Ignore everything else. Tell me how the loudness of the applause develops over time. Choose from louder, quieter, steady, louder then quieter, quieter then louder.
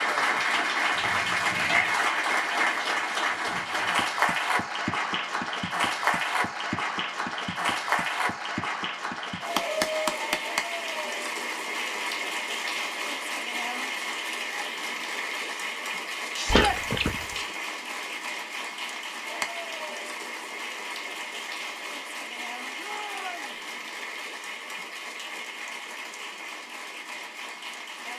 quieter.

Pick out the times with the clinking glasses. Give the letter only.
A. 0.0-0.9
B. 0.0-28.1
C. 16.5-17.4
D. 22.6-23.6
C.